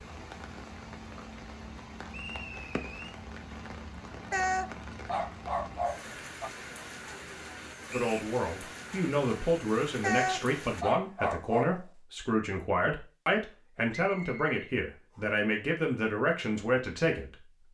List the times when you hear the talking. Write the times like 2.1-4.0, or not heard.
7.9-17.7.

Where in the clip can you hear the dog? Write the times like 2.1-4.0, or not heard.
4.3-6.5, 10.0-11.8.